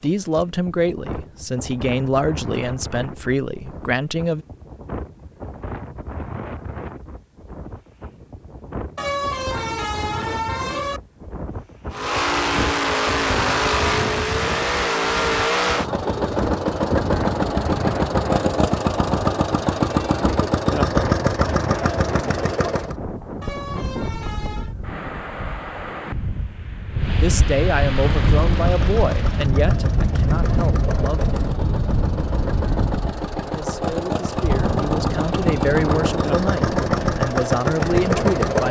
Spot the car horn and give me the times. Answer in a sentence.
You can hear the car horn from 8.9 to 11.0 s and from 23.4 to 24.8 s.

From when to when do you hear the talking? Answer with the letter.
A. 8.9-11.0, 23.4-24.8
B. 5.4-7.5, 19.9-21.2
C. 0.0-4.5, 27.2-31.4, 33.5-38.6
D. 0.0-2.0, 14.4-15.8
C.